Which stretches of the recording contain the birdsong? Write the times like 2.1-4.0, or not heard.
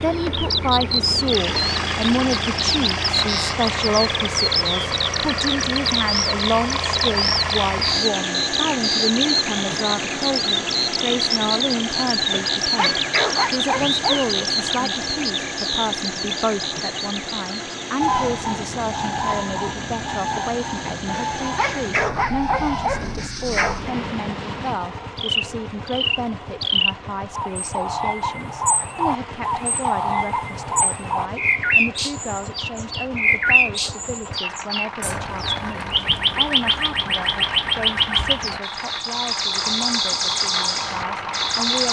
0.0-41.8.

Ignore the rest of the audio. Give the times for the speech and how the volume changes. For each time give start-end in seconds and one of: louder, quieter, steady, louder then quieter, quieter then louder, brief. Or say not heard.
0.0-41.8 quieter.